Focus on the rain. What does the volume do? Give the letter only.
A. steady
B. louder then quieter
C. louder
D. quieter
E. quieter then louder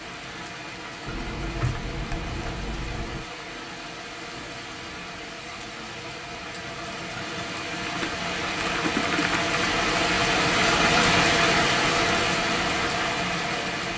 C.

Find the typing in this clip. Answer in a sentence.
You can hear the typing from 1.1 to 3.2 s and from 7.8 to 9.6 s.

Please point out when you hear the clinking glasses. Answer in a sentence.
The clinking glasses can't be heard in this clip.